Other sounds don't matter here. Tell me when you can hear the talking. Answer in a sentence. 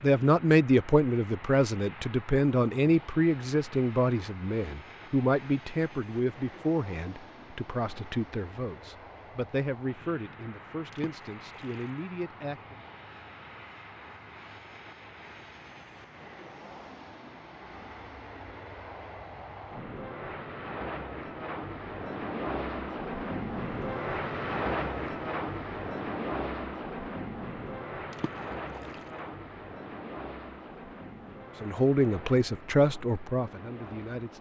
The talking can be heard from 0.0 to 12.8 s and from 31.6 to 34.3 s.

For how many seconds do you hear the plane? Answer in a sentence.
The plane can be heard for 34 seconds in total.